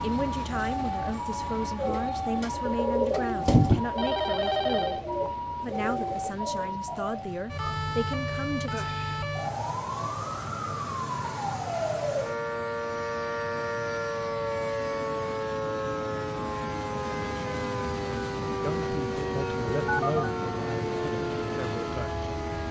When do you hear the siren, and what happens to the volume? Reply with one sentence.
The siren can be heard from 0.0 to 22.6 s, at a steady volume.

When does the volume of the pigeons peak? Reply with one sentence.
The loudest moment of the pigeons is at 4 seconds.